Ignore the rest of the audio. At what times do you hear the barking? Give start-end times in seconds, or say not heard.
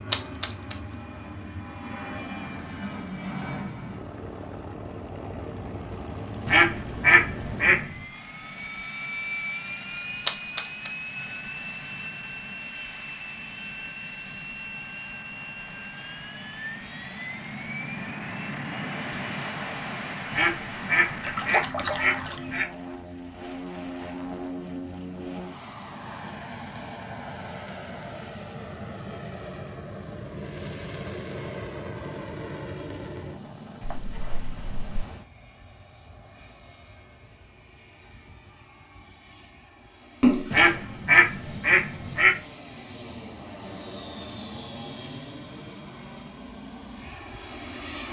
not heard.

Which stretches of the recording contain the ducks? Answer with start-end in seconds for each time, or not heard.
6.5-8.0, 20.3-22.6, 40.5-42.4.